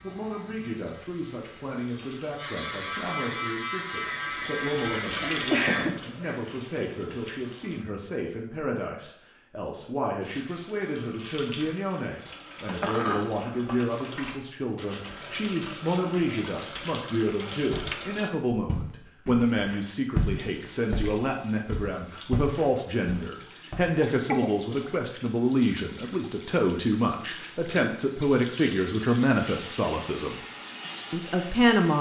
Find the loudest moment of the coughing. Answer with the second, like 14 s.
6 s.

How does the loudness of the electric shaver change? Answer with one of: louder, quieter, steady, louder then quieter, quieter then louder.
louder.